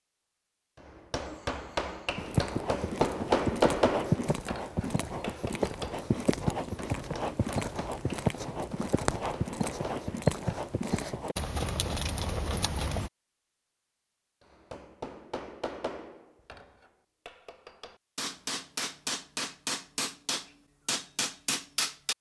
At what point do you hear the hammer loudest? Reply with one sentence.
The loudest moment of the hammer is at 3 seconds.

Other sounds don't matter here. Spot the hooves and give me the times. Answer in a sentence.
You can hear the hooves from 2.1 to 13.1 s.